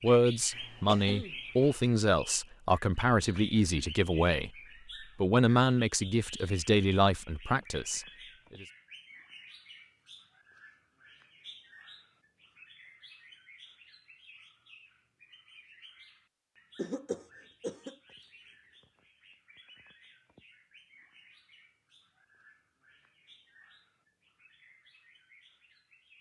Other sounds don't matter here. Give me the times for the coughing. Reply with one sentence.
You can hear the coughing from 0.5 to 1.8 s and from 16.8 to 17.9 s.